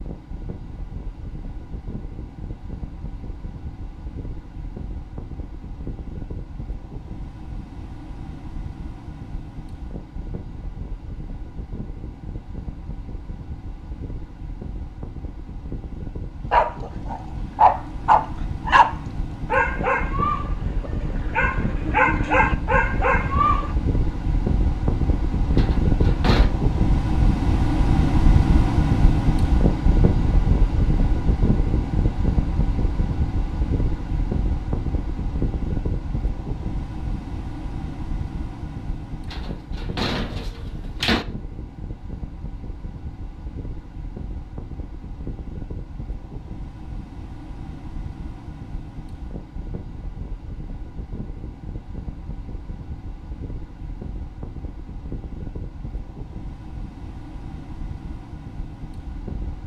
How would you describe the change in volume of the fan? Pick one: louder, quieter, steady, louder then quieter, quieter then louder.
louder then quieter.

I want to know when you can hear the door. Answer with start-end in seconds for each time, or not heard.
25.6-26.5, 39.3-41.2.